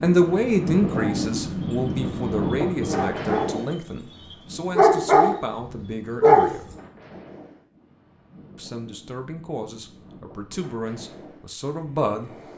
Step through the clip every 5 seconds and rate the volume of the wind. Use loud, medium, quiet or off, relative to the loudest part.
loud, quiet, quiet.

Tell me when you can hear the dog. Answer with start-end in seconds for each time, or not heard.
0.9-6.5.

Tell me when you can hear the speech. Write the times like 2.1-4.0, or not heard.
0.0-6.7, 8.6-12.3.